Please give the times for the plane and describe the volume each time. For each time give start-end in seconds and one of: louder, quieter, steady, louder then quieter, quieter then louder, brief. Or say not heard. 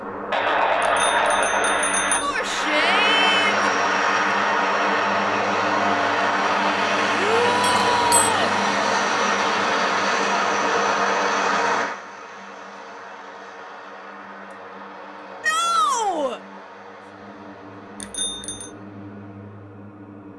0.0-20.3 quieter.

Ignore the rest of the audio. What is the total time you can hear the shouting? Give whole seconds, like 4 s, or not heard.
4 s.